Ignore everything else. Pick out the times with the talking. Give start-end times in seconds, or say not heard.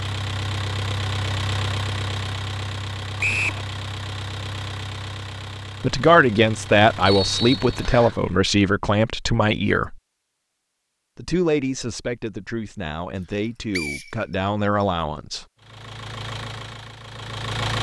5.8-10.0, 11.2-15.4.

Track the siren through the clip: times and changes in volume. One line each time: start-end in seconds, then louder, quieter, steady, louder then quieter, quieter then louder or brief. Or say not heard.
not heard.